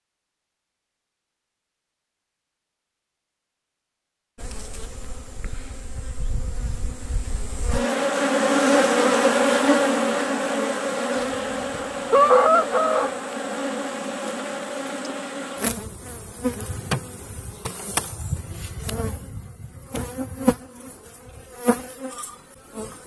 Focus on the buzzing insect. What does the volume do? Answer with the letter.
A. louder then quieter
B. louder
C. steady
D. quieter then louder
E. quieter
A.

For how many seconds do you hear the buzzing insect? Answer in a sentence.
The buzzing insect can be heard for 19 seconds in total.